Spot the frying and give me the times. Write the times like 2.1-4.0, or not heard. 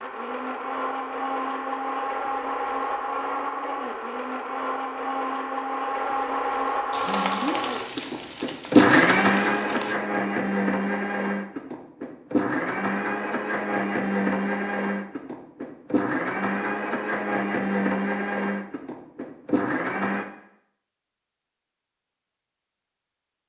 6.9-9.9.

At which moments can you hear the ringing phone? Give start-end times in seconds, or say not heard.
not heard.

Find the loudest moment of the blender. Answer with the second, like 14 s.
9 s.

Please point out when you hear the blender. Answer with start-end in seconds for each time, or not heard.
0.0-20.2.